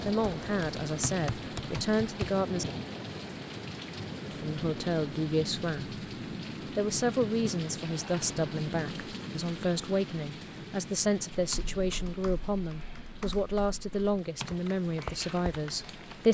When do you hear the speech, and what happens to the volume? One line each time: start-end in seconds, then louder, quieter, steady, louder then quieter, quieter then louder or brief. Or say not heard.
0.0-2.8 brief
4.3-6.0 brief
6.7-16.2 steady.